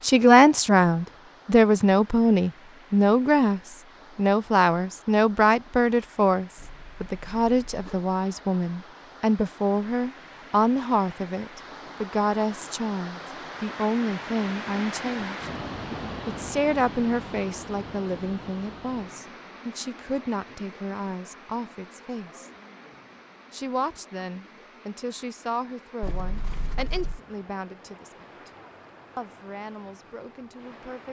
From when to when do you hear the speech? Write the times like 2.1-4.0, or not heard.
0.0-15.4, 16.2-22.5, 23.5-28.5, 29.1-31.0.